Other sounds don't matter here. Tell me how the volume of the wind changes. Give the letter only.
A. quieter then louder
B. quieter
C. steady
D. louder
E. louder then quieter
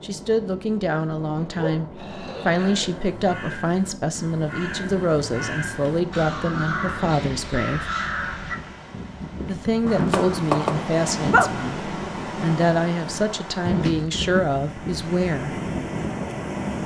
D.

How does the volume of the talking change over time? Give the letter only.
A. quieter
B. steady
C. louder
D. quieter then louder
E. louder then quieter
B.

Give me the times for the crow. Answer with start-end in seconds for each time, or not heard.
2.5-8.6.